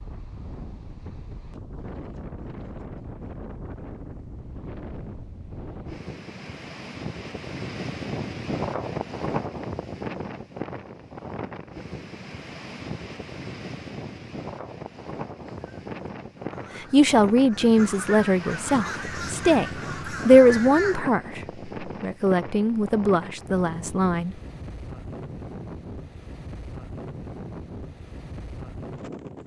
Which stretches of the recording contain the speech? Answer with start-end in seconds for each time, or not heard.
16.8-24.4.